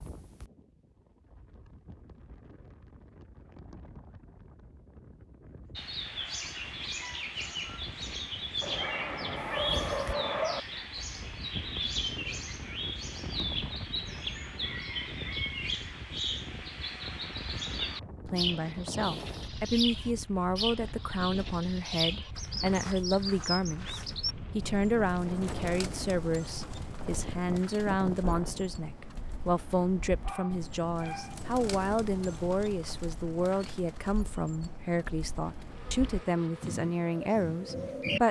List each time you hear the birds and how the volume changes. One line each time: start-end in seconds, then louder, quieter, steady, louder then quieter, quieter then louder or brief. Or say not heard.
5.8-38.2 quieter.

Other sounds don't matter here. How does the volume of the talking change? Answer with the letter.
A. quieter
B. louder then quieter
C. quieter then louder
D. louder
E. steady
E.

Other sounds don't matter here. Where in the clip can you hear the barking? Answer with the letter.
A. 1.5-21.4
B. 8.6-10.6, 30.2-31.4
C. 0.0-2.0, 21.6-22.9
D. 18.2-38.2
B.